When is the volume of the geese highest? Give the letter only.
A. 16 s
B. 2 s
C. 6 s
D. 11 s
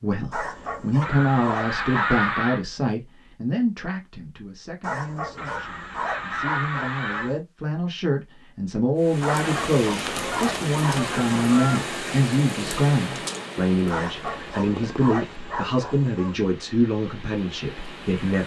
B.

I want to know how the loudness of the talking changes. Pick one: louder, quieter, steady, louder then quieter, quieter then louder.
quieter then louder.